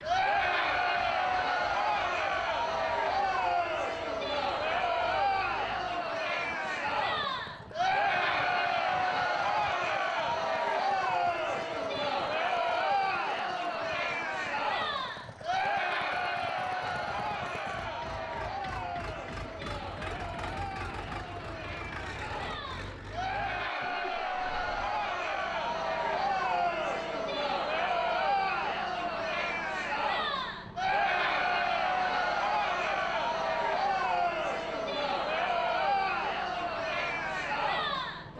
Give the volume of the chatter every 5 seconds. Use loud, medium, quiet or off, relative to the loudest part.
loud, loud, loud, medium, medium, loud, loud, loud.